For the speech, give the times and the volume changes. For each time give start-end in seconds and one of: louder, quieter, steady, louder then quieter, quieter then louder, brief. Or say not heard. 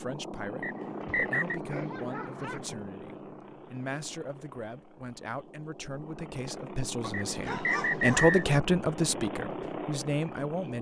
0.0-10.7 louder.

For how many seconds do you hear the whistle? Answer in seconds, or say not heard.
2 s.